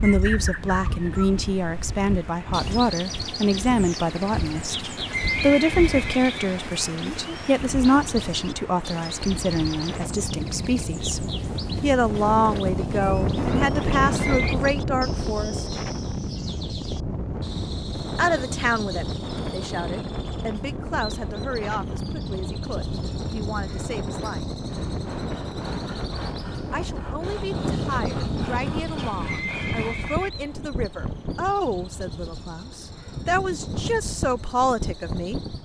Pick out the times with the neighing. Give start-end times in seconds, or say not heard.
4.7-6.7, 14.1-14.6, 28.9-30.3.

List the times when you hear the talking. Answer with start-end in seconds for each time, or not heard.
0.0-15.8, 18.1-24.4, 26.7-35.4.